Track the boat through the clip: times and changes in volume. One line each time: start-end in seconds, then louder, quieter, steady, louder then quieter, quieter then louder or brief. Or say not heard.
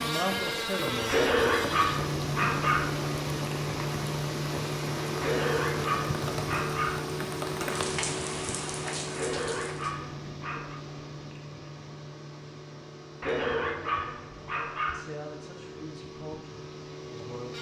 0.0-17.5 quieter.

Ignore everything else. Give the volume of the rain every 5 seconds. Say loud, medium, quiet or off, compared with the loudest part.
loud, loud, off, off.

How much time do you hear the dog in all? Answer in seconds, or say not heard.
7 s.